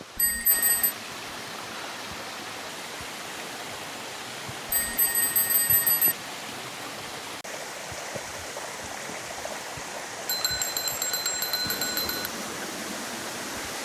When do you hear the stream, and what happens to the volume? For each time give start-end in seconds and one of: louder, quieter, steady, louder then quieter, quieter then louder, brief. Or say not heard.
0.0-13.7 steady.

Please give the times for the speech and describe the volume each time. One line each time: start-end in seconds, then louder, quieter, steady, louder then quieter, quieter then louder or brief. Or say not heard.
not heard.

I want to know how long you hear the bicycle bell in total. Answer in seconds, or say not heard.
4 s.